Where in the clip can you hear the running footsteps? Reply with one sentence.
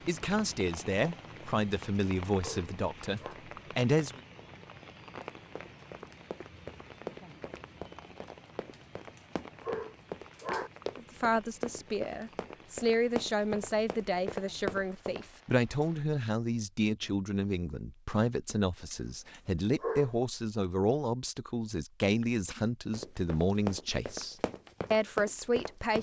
You can hear the running footsteps from 5.2 to 15.2 s and from 22.9 to 25.9 s.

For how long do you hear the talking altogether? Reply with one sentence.
The talking can be heard for 19 seconds in total.